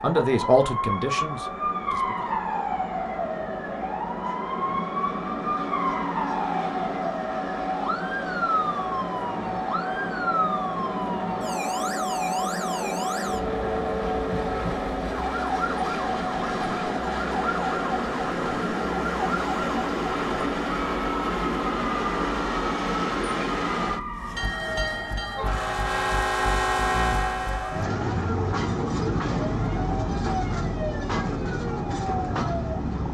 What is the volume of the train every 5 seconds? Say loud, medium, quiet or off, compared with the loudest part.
medium, loud, loud, loud, loud, loud, loud.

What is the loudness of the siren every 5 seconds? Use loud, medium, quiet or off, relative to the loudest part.
loud, loud, loud, loud, loud, medium, medium.